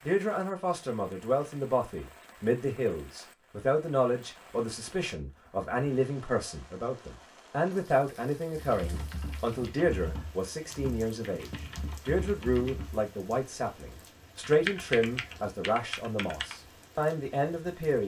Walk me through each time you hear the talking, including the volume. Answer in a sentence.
The talking can be heard from 0.0 to 18.0 s, at a steady volume.